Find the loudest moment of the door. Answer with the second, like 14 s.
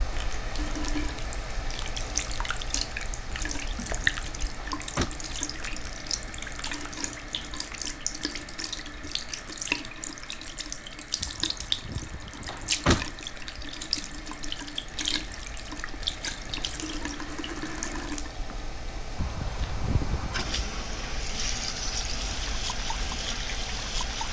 13 s.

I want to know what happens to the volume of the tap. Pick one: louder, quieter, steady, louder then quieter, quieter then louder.
steady.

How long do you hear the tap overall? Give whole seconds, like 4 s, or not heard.
24 s.